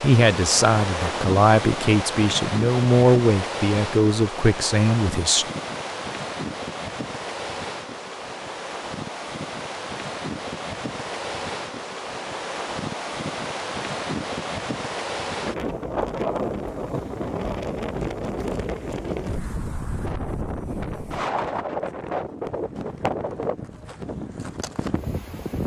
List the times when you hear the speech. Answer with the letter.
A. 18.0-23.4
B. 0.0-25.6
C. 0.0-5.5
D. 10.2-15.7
C.